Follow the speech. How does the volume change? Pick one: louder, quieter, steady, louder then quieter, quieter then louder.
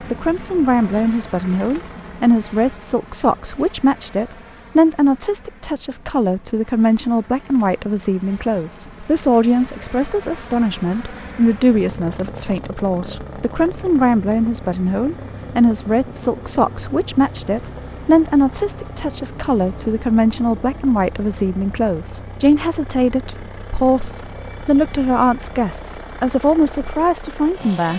steady.